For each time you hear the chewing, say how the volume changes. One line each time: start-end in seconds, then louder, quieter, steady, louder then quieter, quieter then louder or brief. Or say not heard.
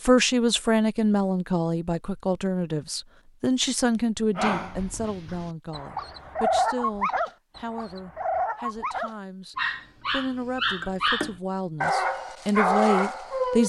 not heard.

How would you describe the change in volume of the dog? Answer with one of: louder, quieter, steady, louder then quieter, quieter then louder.
louder.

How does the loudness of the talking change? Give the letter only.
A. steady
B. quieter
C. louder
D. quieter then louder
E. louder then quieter
D.